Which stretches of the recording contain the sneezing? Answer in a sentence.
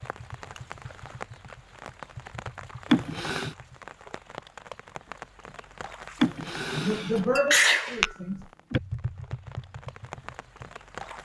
The sneezing can be heard from 2.9 to 3.5 s and from 6.2 to 8.8 s.